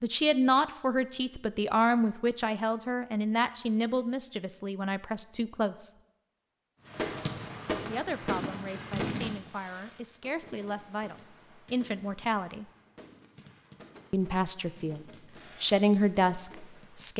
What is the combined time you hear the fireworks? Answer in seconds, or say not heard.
10 s.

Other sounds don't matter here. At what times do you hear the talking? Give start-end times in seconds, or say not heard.
0.0-6.0, 7.8-12.7, 14.1-17.1.